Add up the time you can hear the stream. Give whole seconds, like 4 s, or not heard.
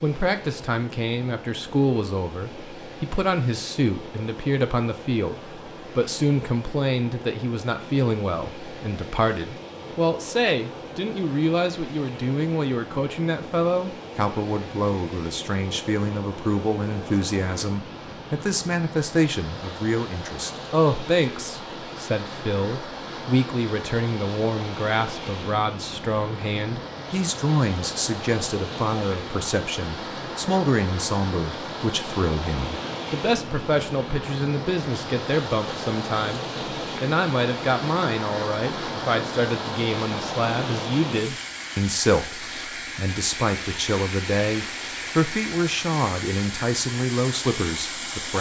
48 s.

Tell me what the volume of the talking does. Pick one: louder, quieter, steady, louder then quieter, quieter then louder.
steady.